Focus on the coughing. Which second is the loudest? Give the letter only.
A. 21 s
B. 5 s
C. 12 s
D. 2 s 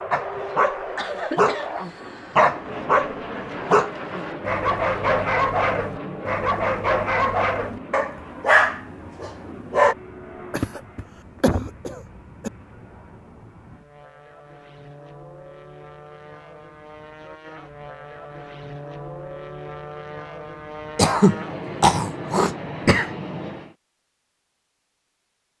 A.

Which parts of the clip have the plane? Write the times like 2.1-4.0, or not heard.
0.0-23.8.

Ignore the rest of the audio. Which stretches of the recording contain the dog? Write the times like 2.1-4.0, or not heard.
0.1-9.9.